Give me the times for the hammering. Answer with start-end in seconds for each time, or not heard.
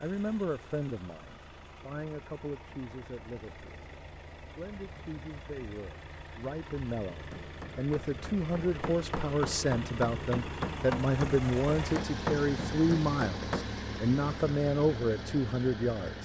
7.1-13.7.